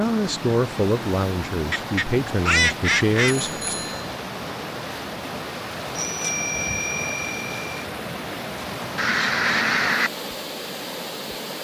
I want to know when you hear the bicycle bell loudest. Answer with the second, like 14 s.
6 s.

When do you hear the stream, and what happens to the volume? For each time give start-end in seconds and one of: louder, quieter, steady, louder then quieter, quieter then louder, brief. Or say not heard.
0.0-11.6 steady.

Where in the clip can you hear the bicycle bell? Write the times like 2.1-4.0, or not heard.
3.4-4.0, 6.0-7.8.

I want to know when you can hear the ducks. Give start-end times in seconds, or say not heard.
1.7-3.7, 8.9-10.1.